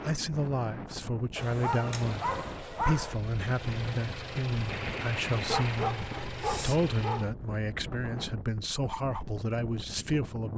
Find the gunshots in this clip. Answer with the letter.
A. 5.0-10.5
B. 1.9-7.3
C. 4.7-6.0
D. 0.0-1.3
C.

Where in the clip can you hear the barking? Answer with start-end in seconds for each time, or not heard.
1.4-3.1, 5.5-7.2.